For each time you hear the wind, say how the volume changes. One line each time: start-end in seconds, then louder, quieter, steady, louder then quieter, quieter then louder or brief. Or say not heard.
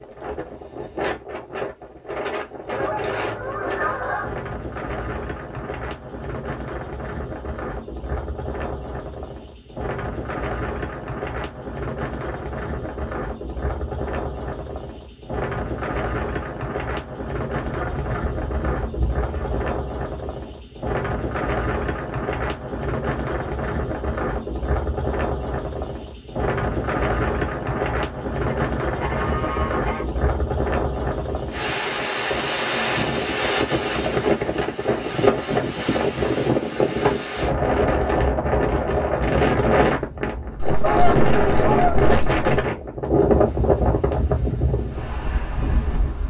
0.0-46.2 louder.